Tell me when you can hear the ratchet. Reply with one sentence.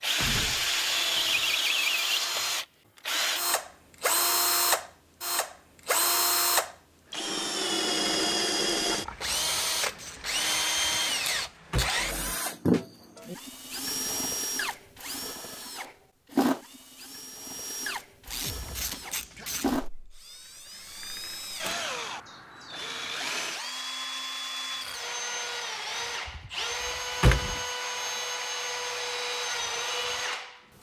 The ratchet can be heard from 8.8 to 10.7 s and from 18.2 to 19.9 s.